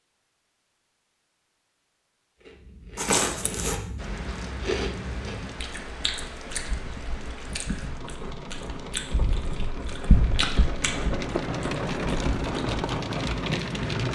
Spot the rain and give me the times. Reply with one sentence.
You can hear the rain from 4.0 to 14.0 s.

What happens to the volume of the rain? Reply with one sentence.
The volume of the rain goes up.